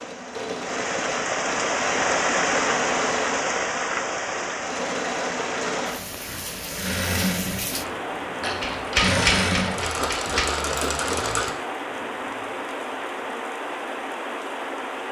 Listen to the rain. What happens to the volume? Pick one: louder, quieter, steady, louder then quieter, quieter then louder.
quieter.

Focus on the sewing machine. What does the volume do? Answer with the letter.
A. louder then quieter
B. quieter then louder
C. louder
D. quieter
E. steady
C.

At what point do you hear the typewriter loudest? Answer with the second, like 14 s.
9 s.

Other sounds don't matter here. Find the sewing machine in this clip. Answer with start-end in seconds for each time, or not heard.
0.0-11.5.